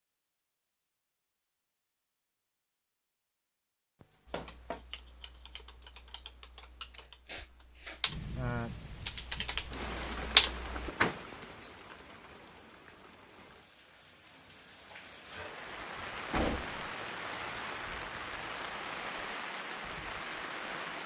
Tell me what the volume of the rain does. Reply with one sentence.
The loudness of the rain goes down, then up.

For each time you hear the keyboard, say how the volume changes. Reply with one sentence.
You can hear the keyboard from 4.2 to 10.9 s, getting louder.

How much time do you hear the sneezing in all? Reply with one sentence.
You can hear the sneezing for 2 seconds altogether.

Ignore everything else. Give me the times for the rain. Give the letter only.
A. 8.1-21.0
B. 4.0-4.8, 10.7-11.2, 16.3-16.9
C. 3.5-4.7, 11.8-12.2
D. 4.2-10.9
A.